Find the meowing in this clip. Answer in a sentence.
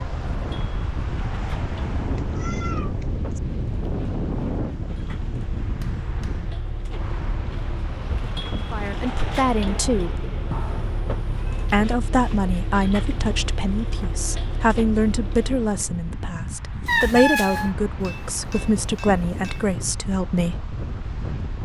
The meowing can be heard from 2.1 to 3.4 s, from 10.5 to 11.8 s and from 16.9 to 17.8 s.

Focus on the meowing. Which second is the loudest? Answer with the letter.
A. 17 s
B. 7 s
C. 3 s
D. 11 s
A.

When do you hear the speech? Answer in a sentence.
The speech can be heard from 8.7 to 10.2 s and from 11.7 to 20.6 s.